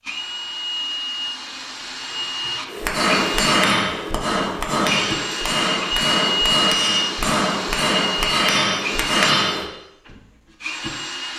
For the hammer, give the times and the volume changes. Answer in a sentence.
You can hear the hammer from 2.6 to 9.7 s, at a steady volume.